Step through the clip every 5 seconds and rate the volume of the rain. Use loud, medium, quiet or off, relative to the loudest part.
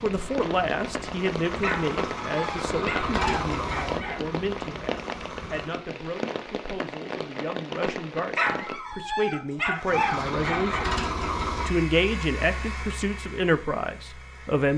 loud, loud, off.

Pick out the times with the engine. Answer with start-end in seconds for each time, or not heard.
0.0-5.8, 9.8-14.7.